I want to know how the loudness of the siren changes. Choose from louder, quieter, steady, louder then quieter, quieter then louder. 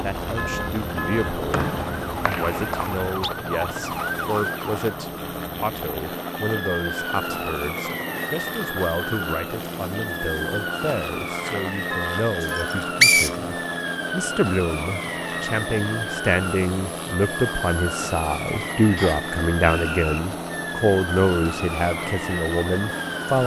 steady.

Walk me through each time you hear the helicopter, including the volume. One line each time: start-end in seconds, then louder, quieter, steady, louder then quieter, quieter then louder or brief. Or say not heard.
0.0-23.4 steady.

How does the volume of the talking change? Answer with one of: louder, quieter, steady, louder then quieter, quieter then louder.
louder.